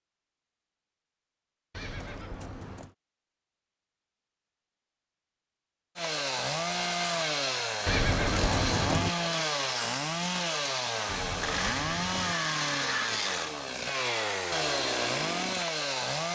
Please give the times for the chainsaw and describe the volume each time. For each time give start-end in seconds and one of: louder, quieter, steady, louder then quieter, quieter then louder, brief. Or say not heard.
6.0-16.3 steady.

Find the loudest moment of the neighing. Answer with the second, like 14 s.
8 s.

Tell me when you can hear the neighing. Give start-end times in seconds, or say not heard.
1.7-3.0, 7.8-9.1, 11.1-12.3.